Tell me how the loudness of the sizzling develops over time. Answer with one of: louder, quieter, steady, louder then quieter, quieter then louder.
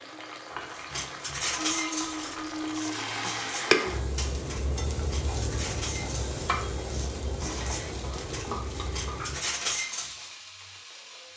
louder then quieter.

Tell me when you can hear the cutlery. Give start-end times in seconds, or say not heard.
0.7-10.3.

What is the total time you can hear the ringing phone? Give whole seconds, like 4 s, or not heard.
2 s.